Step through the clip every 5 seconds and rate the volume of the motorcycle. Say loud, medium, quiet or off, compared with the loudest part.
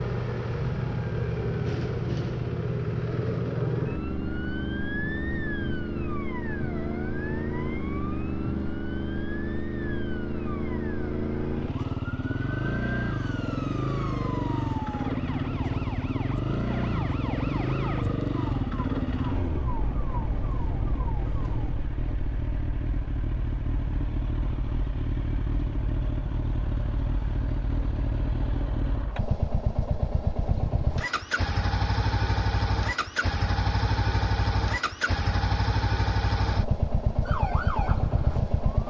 loud, loud, loud, loud, medium, loud, loud, loud.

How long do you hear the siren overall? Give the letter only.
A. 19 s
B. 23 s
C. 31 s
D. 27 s
B.